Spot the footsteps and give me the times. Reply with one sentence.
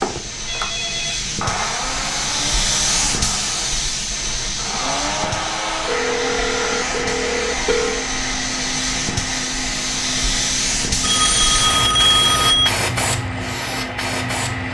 You can't hear the footsteps here.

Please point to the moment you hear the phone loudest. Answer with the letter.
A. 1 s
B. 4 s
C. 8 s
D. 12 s
D.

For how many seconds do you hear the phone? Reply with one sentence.
You can hear the phone for 5 seconds altogether.